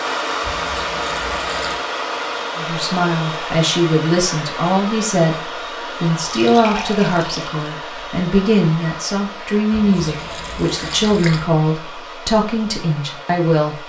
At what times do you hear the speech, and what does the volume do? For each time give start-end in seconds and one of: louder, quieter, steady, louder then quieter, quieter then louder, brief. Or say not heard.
2.5-13.8 steady.